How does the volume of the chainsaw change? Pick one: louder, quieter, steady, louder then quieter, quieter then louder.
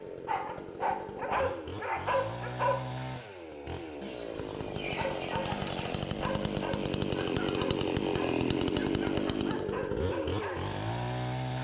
louder.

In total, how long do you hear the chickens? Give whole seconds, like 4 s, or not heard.
2 s.